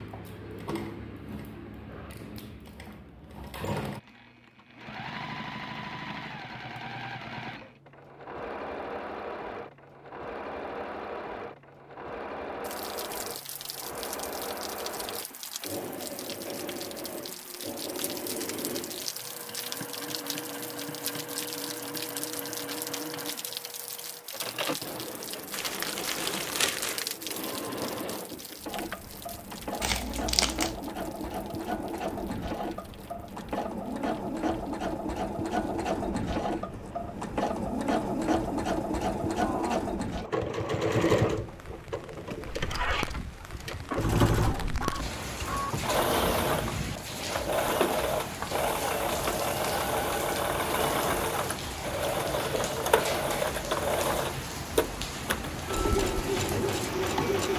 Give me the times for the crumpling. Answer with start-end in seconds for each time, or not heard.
25.5-27.1, 29.8-30.8.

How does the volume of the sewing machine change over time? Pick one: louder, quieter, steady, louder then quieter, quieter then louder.
louder.